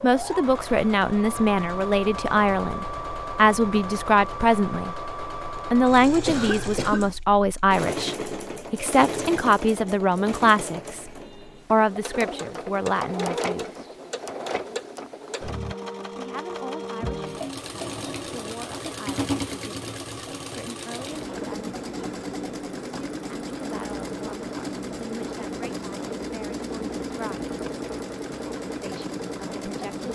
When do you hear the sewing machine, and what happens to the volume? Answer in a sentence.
You can hear the sewing machine from 0.0 to 30.1 s, at a steady volume.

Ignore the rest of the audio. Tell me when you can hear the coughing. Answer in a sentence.
The coughing can be heard from 6.2 to 7.2 s.